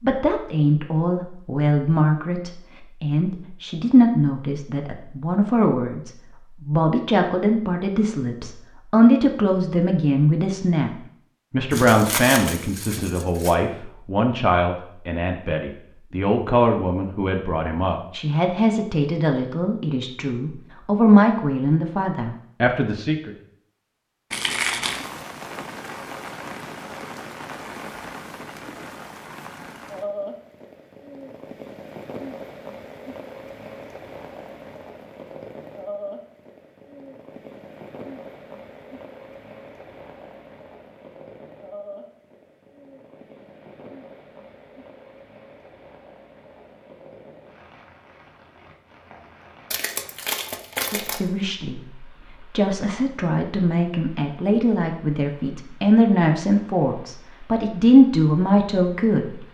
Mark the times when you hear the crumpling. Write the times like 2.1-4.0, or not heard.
11.7-13.6, 24.3-25.1, 49.7-51.2.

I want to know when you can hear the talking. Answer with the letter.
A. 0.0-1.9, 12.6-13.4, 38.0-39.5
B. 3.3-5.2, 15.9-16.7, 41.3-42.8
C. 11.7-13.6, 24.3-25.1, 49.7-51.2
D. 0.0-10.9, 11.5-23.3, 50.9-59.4
D.